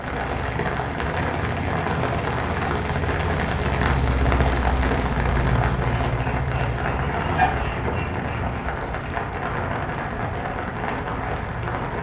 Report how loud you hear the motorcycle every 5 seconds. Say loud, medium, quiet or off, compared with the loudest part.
loud, loud, medium.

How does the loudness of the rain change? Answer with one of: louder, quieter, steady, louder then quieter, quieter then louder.
steady.